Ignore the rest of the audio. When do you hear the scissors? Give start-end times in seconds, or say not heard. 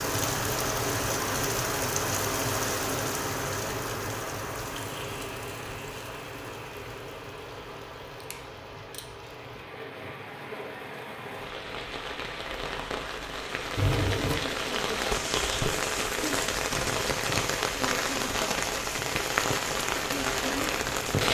8.2-9.1, 13.8-14.4.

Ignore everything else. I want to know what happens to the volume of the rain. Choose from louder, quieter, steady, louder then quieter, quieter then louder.
quieter then louder.